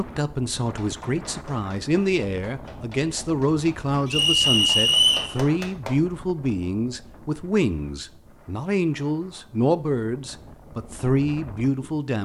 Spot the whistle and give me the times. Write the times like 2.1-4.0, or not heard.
4.0-5.3.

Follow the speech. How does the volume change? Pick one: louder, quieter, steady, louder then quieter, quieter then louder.
steady.